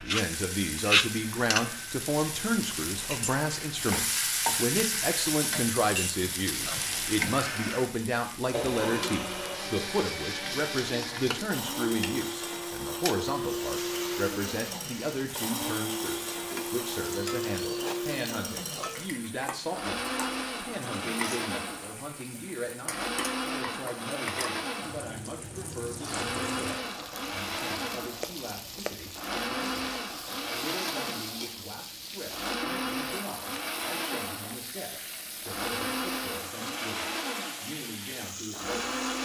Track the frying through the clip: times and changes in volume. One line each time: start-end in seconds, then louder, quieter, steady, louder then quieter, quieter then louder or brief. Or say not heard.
0.0-39.2 quieter.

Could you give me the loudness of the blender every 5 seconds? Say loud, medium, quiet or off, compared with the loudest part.
medium, loud, loud, loud, loud, loud, loud, loud.